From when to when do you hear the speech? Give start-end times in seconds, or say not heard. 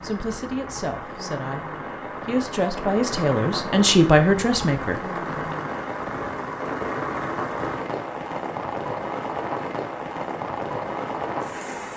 0.0-1.6, 2.2-5.5.